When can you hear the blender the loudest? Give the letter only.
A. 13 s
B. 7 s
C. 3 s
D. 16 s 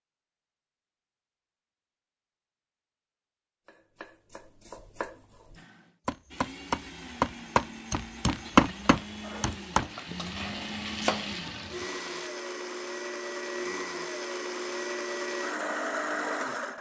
D.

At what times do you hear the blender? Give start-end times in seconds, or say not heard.
5.5-16.7.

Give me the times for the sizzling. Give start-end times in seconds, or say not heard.
8.4-12.3.